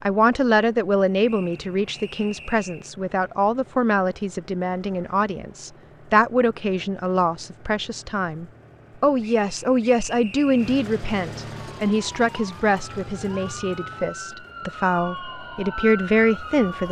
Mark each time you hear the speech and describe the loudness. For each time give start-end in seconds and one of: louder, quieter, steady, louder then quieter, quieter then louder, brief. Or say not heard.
0.0-16.8 steady.